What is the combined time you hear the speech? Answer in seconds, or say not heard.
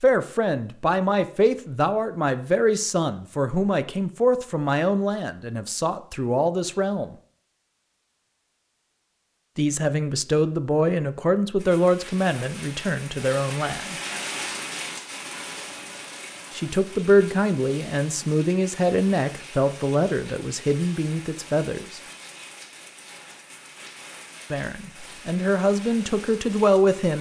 20 s.